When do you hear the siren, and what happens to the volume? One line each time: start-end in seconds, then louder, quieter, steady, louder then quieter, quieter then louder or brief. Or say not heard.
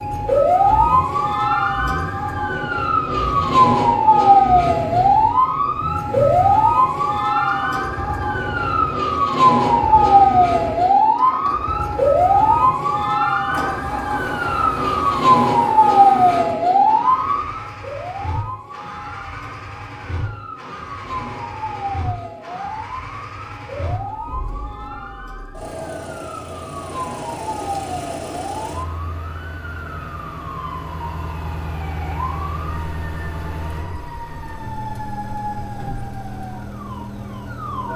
0.0-37.9 quieter.